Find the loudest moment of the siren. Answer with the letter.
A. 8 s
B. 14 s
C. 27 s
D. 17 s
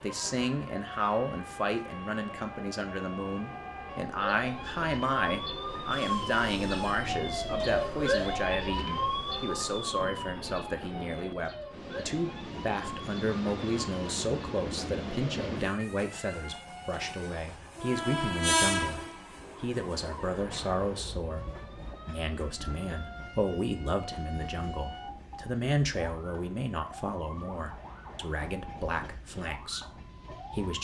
A.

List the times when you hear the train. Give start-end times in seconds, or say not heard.
0.0-30.7.